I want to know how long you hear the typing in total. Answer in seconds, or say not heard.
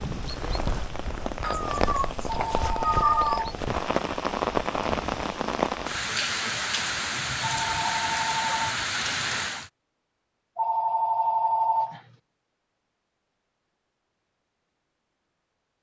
not heard.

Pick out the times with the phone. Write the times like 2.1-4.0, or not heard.
2.2-3.4, 7.4-8.7, 10.6-12.0.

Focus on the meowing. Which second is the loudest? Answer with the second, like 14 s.
3 s.